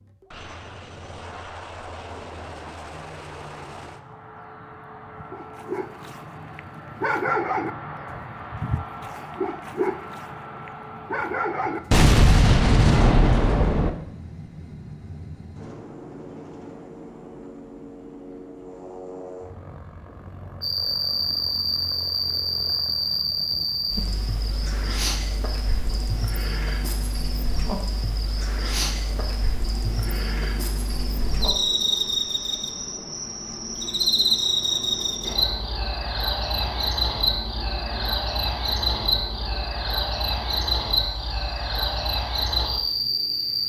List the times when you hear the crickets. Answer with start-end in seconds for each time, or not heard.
20.6-43.6.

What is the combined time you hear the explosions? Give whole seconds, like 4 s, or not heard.
2 s.